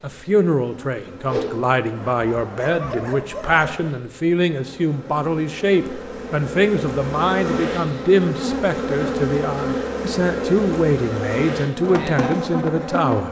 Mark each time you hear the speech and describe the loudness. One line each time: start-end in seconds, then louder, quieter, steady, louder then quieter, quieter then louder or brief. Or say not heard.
0.0-13.2 steady.